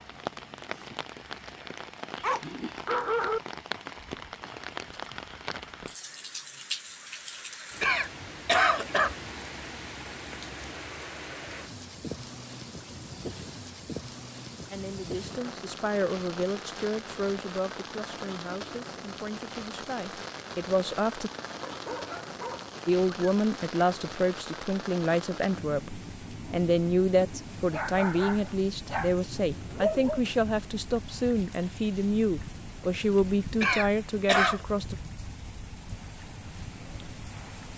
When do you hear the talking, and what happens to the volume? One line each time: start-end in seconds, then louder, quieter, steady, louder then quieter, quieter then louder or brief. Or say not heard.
14.7-21.3 quieter then louder
22.9-35.0 steady.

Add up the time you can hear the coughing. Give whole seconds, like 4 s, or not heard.
2 s.